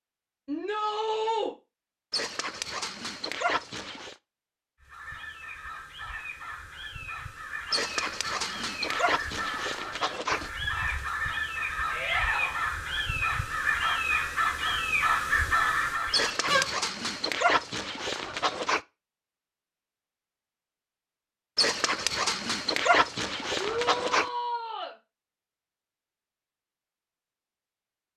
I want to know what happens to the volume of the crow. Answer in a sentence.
The volume of the crow goes up.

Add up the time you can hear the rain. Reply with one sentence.
You can't hear the rain here.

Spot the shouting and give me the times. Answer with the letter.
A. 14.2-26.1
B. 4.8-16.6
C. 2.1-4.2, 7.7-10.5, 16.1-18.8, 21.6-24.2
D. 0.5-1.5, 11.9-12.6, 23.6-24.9
D.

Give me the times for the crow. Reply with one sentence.
The crow can be heard from 4.8 to 16.6 s.